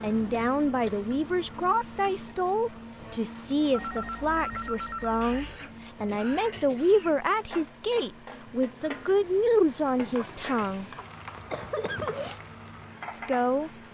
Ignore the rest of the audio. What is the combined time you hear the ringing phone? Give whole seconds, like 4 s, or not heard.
2 s.